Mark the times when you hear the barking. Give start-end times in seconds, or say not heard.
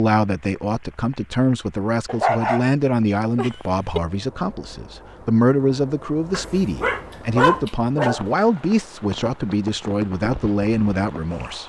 2.0-4.0, 6.3-8.3.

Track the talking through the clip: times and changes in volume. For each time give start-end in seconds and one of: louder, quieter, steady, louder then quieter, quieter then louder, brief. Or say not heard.
0.0-11.6 steady.